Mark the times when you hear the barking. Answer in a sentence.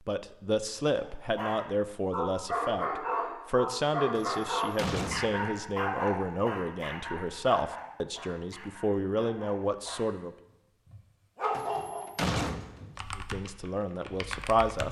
You can hear the barking from 0.9 to 12.1 s.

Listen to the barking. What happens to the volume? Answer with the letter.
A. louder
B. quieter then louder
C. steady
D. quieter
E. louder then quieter
B.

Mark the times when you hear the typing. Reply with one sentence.
You can hear the typing from 12.9 to 14.8 s.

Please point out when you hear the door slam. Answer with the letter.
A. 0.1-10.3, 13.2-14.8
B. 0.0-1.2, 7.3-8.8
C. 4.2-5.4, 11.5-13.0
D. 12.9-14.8
C.